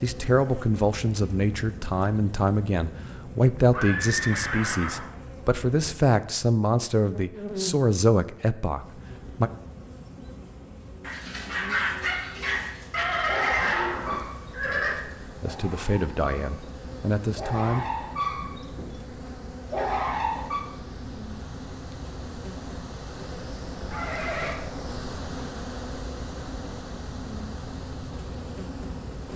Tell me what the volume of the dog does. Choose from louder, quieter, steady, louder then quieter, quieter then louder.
quieter then louder.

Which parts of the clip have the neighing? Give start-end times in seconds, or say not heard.
3.7-5.0, 12.9-14.9, 23.9-24.6.